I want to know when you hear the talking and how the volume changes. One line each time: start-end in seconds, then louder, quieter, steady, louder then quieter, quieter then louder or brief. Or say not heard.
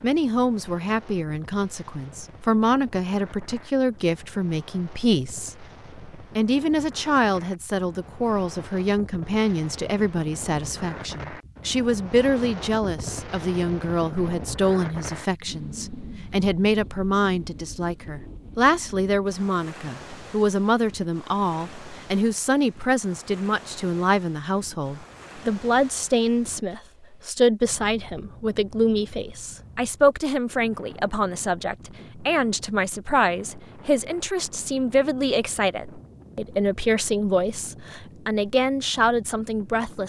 0.0-40.0 steady.